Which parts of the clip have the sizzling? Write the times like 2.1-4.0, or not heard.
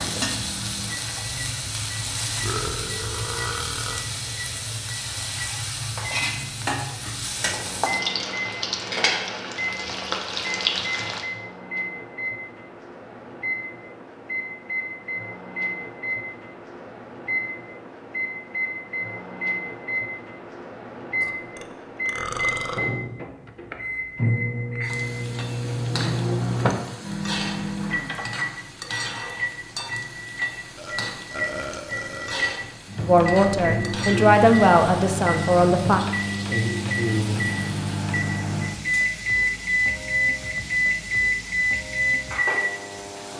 0.0-11.2, 24.8-43.3.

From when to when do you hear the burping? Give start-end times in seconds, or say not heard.
2.4-4.0, 21.2-22.8, 30.8-32.6.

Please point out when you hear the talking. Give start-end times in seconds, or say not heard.
33.0-36.0.